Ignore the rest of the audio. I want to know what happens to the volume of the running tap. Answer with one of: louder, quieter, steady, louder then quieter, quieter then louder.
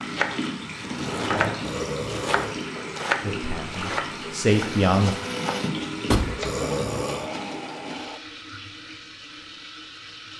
quieter.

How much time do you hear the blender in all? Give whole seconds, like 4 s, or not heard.
4 s.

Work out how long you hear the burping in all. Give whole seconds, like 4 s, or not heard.
2 s.